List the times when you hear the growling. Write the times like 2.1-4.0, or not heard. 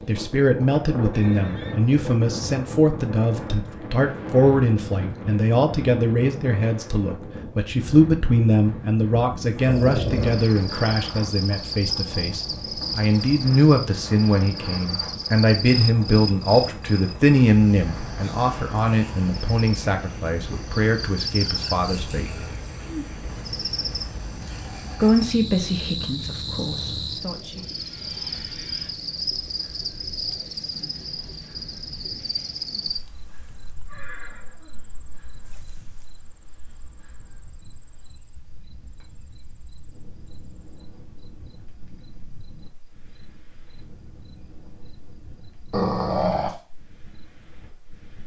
9.7-10.4, 45.7-46.5.